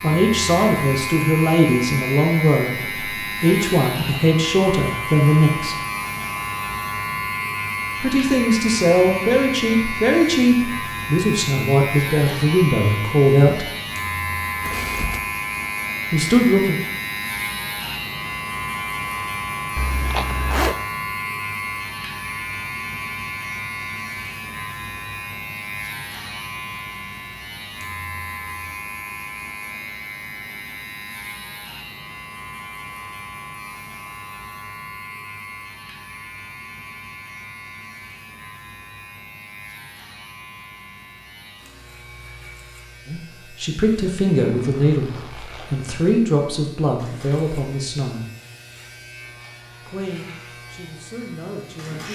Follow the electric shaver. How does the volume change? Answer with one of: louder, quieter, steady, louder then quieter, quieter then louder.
quieter.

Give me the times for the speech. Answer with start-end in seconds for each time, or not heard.
0.0-5.8, 8.0-13.7, 16.1-16.8, 43.0-48.2, 49.9-52.1.